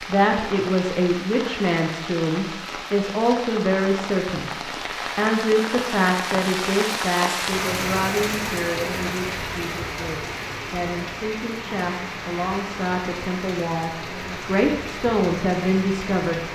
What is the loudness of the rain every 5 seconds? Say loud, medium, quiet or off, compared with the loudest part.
medium, loud, medium, medium.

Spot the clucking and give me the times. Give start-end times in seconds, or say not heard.
not heard.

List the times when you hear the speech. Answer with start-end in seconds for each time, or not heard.
0.0-16.4.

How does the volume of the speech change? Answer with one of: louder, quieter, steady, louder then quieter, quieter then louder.
quieter then louder.